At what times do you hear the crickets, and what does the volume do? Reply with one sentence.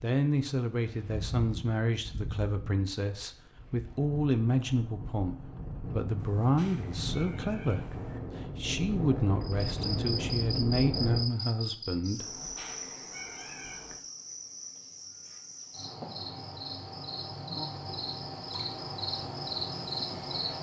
The crickets can be heard from 9.4 to 20.5 s, getting quieter then louder.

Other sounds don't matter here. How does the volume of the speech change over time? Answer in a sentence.
The volume of the speech stays about the same.